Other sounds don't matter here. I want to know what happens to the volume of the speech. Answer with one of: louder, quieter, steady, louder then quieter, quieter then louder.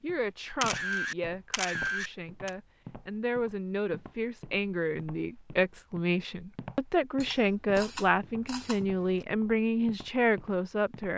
louder.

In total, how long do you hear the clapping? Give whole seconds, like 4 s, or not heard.
not heard.